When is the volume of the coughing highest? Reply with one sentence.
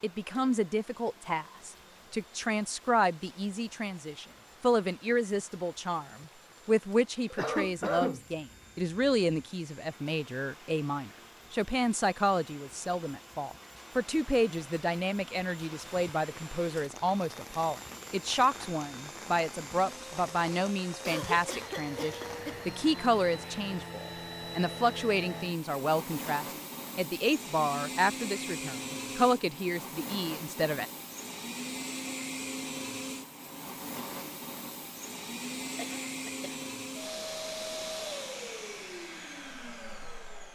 The volume of the coughing peaks at 8 seconds.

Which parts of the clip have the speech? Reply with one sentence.
You can hear the speech from 0.0 to 30.9 s.